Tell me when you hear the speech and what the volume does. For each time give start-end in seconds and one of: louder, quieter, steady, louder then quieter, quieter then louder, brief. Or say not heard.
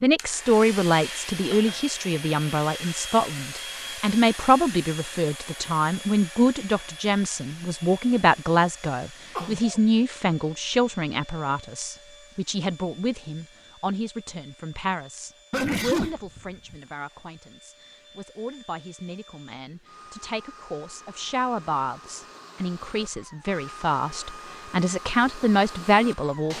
0.0-26.5 quieter then louder.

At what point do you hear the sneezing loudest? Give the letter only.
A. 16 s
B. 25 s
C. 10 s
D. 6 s
A.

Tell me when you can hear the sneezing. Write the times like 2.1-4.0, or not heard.
9.3-9.8, 15.5-16.8.